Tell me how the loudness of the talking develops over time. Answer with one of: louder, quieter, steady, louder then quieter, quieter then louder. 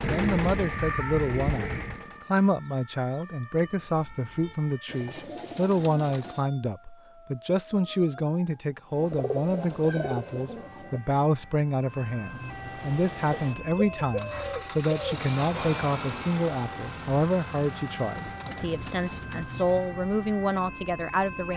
steady.